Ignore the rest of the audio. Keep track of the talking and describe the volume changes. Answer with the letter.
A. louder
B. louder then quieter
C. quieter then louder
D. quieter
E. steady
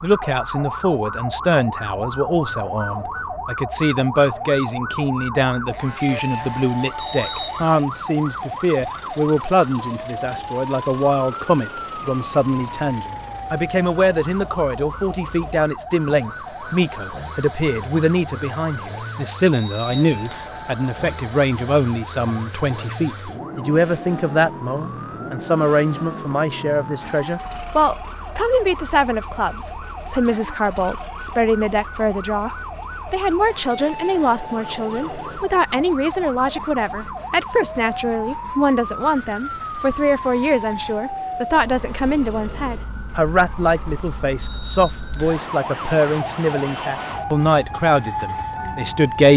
E.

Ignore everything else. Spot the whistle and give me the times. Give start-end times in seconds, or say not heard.
7.0-7.7, 19.5-20.5, 44.4-45.5.